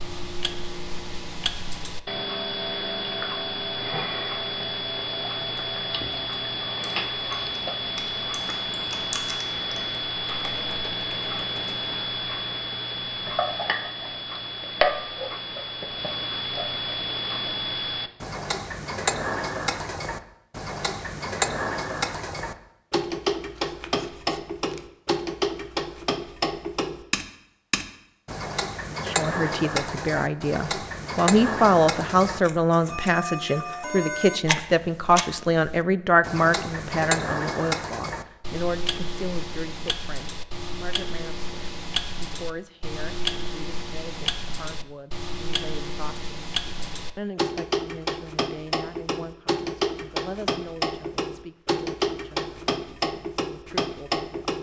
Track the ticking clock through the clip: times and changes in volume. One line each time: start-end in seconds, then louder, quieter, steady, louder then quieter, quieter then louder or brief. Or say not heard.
0.0-54.5 steady.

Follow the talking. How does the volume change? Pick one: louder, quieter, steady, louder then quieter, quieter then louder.
quieter.